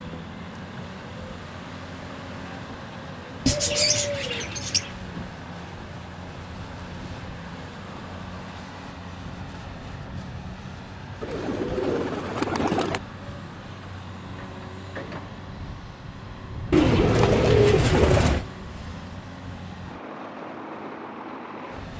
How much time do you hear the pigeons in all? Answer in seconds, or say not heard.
5 s.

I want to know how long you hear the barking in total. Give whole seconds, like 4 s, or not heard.
not heard.